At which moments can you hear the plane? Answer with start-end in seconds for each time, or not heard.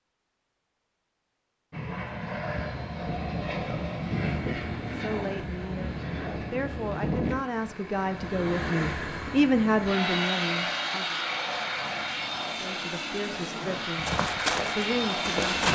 1.7-15.7.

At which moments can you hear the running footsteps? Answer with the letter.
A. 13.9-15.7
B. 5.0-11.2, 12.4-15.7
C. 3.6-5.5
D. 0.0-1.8
A.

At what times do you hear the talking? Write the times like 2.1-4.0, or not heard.
5.0-11.2, 12.4-15.7.